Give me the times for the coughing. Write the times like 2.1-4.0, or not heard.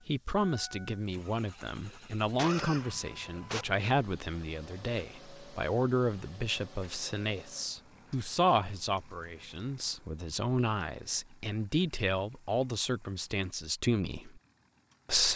1.9-3.6.